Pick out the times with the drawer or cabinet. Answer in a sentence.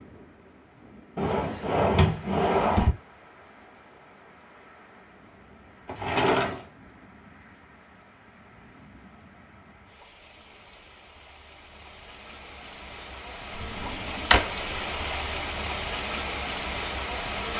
The drawer or cabinet can be heard from 1.1 to 3.0 s, from 5.8 to 6.7 s and from 13.6 to 14.5 s.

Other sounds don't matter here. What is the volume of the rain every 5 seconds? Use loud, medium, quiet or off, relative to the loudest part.
quiet, quiet, medium, loud.